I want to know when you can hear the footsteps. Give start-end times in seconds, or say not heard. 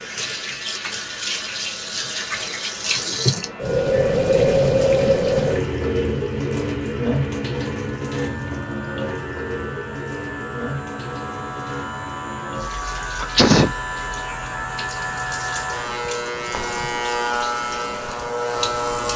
not heard.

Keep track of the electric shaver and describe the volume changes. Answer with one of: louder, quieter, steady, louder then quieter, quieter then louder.
louder.